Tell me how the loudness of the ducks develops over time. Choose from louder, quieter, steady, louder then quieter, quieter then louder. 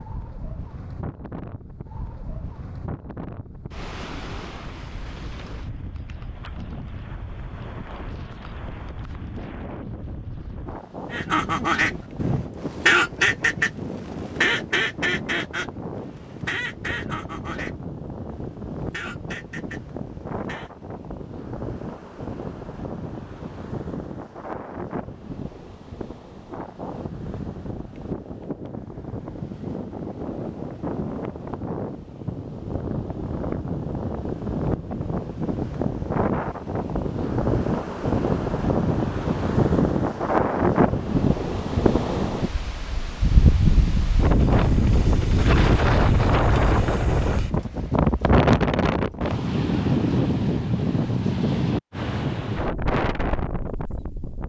quieter.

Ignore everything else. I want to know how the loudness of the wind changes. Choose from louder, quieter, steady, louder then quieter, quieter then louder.
louder.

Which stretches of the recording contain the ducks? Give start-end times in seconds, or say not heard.
11.1-20.7.